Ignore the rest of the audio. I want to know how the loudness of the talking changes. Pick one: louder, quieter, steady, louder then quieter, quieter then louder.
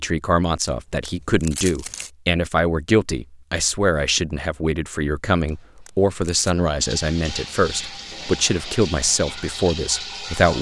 steady.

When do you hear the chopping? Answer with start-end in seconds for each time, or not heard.
not heard.